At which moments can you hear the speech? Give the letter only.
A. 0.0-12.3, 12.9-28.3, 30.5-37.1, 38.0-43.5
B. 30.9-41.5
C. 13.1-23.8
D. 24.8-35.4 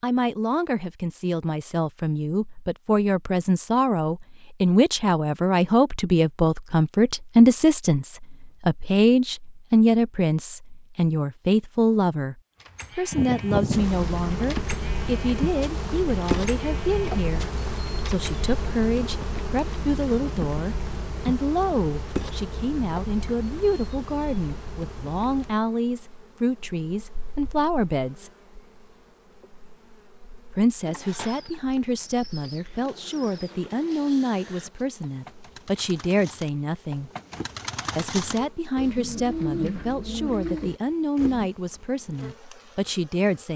A.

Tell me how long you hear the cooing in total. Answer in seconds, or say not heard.
11 s.